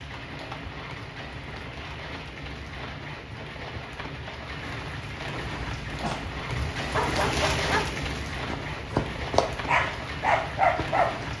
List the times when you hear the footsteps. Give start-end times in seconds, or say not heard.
not heard.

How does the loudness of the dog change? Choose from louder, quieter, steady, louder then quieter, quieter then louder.
louder.